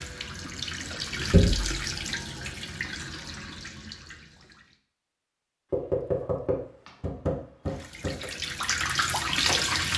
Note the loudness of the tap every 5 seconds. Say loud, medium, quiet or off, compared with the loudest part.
medium, loud.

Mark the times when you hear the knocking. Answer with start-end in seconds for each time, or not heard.
1.3-1.8, 5.7-8.2.